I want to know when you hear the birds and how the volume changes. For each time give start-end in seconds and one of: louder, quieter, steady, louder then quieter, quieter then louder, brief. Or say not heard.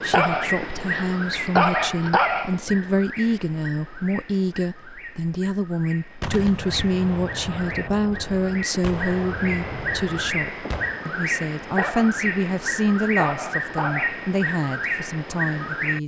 0.0-16.0 quieter then louder.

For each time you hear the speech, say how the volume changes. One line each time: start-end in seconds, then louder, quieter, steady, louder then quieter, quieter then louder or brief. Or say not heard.
0.0-16.0 steady.